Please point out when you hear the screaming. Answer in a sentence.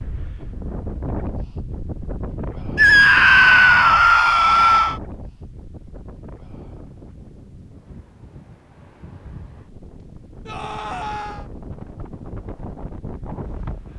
You can hear the screaming from 2.8 to 5.0 s and from 10.4 to 11.4 s.